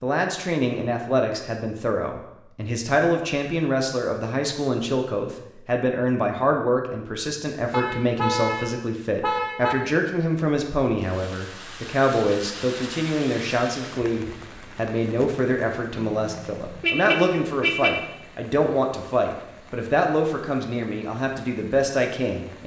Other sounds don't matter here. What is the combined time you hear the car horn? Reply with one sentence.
The car horn can be heard for 4 seconds in total.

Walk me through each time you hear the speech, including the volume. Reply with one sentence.
The speech can be heard from 0.0 to 22.6 s, at a steady volume.